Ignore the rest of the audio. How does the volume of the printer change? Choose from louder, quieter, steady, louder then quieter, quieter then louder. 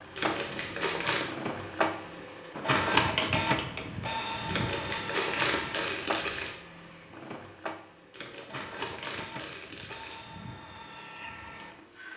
louder then quieter.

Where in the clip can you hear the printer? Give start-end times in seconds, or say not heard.
0.0-12.1.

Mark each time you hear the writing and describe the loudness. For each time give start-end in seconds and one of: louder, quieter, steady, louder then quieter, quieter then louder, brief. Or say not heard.
not heard.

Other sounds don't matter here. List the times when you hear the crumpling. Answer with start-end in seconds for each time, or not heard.
0.1-1.3, 4.5-6.5, 8.1-10.2.